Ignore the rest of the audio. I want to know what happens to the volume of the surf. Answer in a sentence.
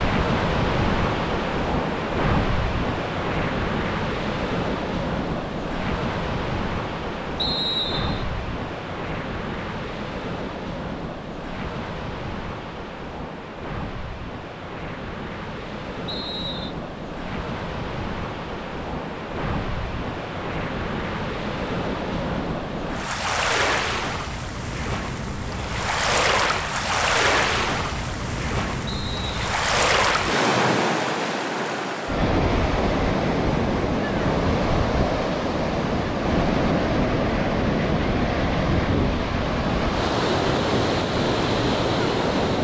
The volume of the surf goes down, then up.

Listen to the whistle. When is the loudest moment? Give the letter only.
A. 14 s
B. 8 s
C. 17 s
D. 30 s
B.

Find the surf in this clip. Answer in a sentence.
The surf can be heard from 0.0 to 42.5 s.